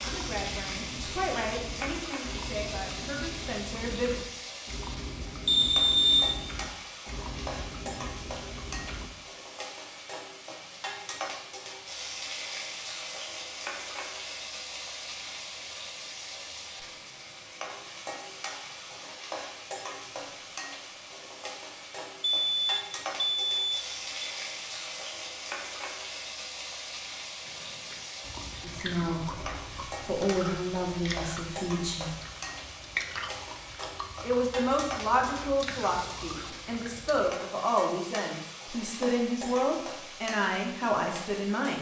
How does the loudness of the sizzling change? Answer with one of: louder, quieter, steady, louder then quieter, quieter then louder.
steady.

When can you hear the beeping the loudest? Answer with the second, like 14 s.
6 s.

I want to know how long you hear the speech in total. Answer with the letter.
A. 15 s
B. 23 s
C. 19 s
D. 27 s
A.